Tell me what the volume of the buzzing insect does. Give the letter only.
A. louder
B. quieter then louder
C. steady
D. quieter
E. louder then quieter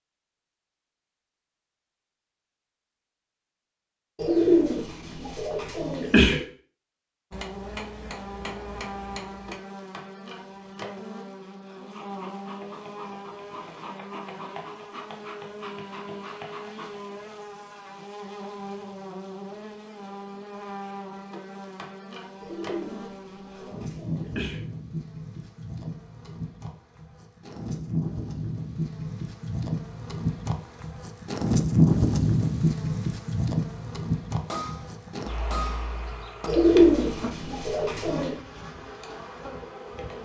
E.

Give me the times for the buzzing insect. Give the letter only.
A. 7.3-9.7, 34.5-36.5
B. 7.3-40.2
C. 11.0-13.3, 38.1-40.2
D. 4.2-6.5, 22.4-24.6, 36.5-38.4
B.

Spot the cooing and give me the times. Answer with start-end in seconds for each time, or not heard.
4.2-6.5, 22.4-24.6, 36.5-38.4.